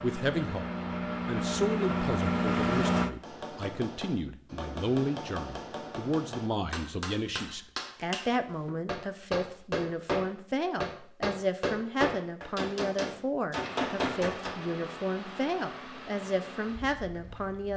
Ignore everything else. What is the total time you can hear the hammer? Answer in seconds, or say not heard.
11 s.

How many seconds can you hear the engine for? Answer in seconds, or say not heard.
7 s.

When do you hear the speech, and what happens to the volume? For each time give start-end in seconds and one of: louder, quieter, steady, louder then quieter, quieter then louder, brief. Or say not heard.
0.0-17.7 steady.